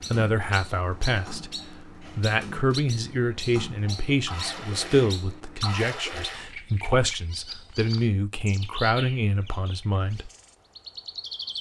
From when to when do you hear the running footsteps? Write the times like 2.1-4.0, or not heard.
not heard.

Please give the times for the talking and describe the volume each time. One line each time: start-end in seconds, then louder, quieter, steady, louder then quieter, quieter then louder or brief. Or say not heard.
0.1-10.3 steady.